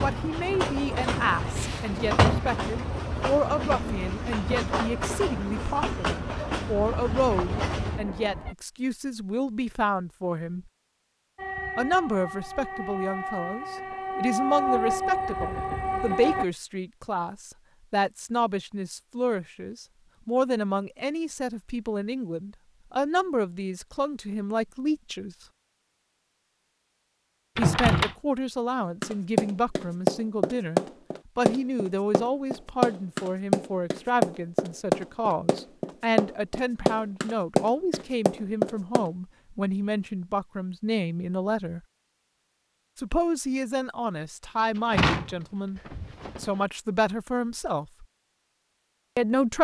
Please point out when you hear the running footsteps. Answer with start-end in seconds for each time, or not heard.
29.0-39.1.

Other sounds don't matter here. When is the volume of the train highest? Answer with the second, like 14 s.
15 s.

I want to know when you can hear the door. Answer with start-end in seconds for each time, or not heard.
1.6-2.5, 27.6-28.1, 44.8-46.5.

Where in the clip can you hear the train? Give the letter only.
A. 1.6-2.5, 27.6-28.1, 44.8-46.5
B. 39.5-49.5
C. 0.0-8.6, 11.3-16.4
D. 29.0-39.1
C.